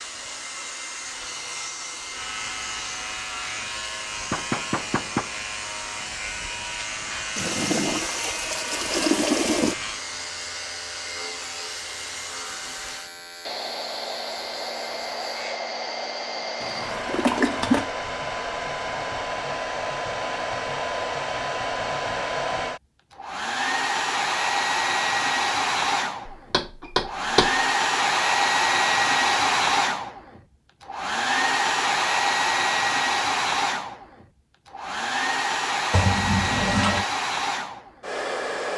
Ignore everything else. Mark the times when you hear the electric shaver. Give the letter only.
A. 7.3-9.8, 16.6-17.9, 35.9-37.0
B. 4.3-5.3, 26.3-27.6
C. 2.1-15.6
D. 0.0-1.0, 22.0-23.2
C.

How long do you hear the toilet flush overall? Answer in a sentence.
You can hear the toilet flush for 5 seconds altogether.